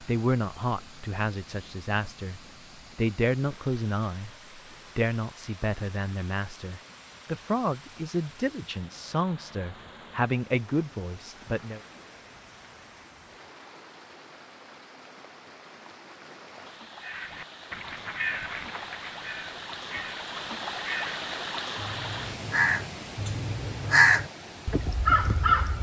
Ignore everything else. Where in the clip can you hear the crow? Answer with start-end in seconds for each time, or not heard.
17.0-25.7.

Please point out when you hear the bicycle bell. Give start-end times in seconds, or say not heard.
not heard.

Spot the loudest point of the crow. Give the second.
24 s.